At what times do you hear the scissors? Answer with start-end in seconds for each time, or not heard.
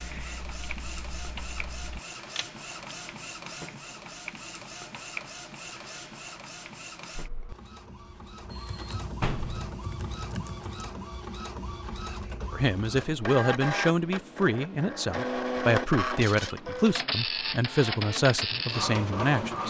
not heard.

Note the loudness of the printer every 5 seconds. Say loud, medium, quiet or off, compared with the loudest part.
medium, medium, medium, loud.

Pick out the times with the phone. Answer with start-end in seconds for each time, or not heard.
7.8-8.9.